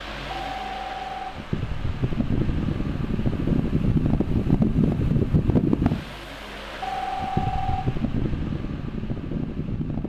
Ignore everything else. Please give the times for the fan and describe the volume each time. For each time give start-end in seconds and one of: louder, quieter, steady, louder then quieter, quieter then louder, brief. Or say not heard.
0.0-10.0 louder then quieter.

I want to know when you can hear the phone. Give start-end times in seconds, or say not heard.
0.3-1.4, 6.8-7.8.